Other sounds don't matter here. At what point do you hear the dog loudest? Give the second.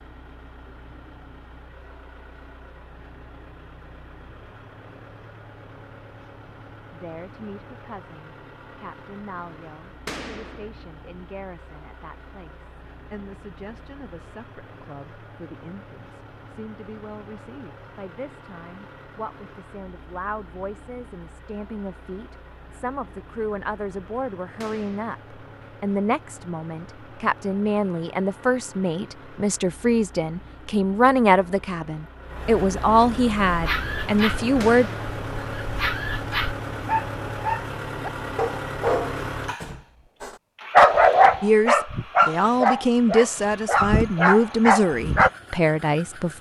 41 s.